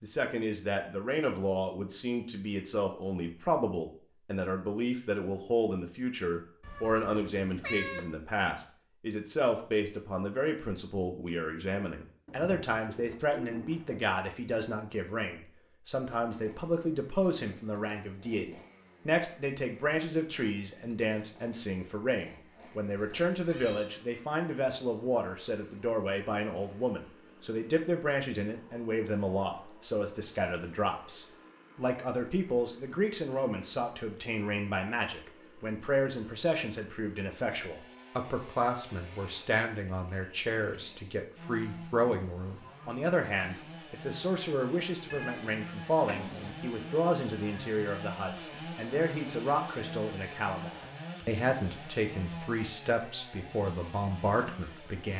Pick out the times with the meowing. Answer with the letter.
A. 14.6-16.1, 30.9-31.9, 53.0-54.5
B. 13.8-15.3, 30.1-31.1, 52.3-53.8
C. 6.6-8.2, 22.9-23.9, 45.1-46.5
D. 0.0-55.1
C.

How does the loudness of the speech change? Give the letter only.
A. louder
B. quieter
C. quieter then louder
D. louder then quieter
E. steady
E.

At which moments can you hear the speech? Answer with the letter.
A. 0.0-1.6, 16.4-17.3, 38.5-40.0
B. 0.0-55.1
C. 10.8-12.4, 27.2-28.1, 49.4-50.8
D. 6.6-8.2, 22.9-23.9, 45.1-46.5
B.